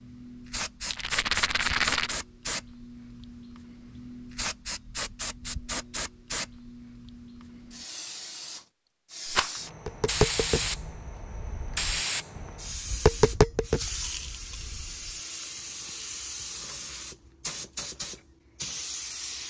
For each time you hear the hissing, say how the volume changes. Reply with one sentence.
The hissing can be heard from 0.0 to 19.4 s, at a steady volume.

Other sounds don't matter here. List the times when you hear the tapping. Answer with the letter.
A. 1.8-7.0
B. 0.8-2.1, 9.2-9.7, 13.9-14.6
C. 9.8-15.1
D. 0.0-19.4
C.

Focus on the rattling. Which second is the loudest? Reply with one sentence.
The volume of the rattling peaks at 2 seconds.